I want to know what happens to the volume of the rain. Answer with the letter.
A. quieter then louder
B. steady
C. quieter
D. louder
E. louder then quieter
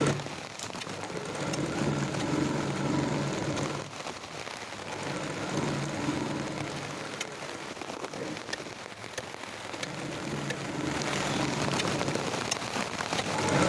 D.